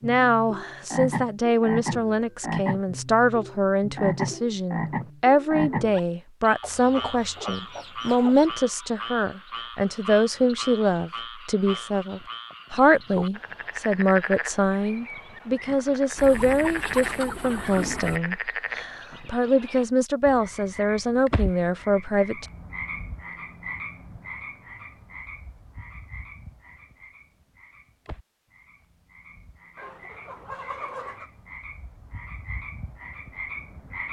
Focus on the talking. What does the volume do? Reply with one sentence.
The loudness of the talking stays about the same.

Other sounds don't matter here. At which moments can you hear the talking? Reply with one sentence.
The talking can be heard from 0.0 to 22.4 s.